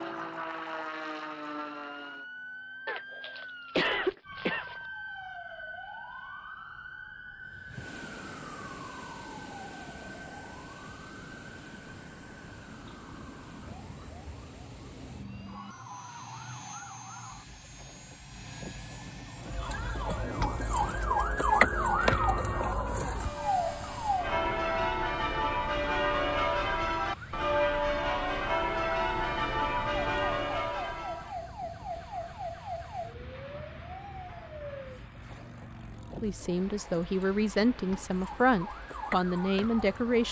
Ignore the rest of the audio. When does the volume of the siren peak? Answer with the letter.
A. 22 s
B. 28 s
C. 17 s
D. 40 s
A.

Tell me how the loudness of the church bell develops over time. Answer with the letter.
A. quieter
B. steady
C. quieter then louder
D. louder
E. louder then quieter
D.